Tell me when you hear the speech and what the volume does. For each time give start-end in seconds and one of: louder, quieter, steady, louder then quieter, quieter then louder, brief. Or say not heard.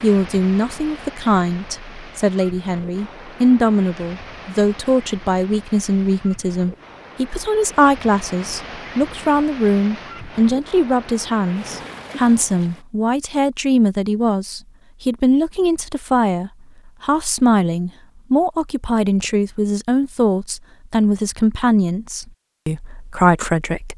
0.0-23.9 steady.